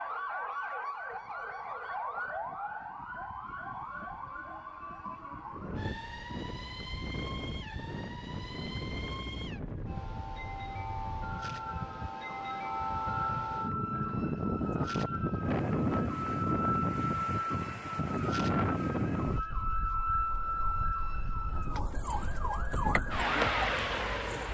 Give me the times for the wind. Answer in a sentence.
You can hear the wind from 5.5 to 24.4 s.